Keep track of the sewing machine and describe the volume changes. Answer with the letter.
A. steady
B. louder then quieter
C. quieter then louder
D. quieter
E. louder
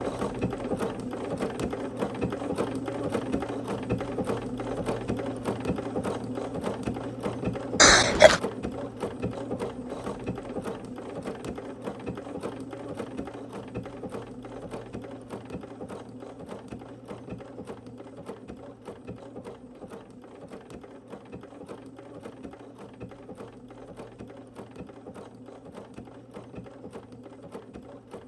D.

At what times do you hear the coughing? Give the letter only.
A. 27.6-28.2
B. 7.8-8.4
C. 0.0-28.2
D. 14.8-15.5
B.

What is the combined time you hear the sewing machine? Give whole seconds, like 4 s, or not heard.
28 s.